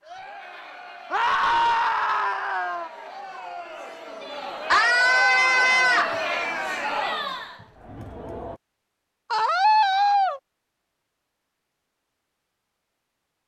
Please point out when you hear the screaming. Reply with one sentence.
You can hear the screaming from 1.1 to 2.9 s, from 4.7 to 6.2 s and from 9.3 to 10.4 s.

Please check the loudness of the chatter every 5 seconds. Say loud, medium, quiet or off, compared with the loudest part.
medium, loud, off.